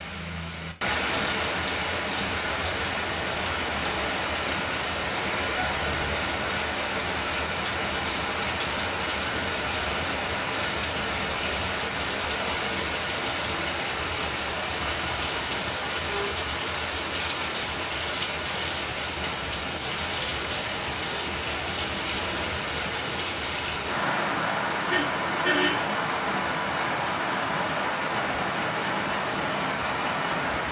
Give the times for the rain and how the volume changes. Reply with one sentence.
You can hear the rain from 0.0 to 30.6 s, at a steady volume.